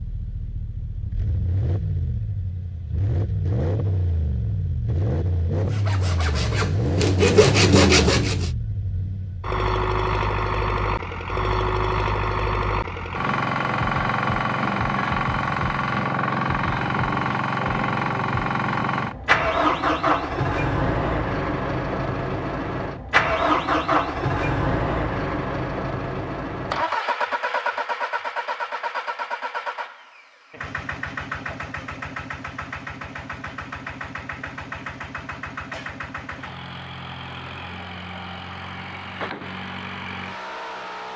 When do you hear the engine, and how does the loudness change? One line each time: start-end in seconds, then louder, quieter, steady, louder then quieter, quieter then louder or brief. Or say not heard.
0.0-41.1 louder then quieter.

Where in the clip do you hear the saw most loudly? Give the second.
8 s.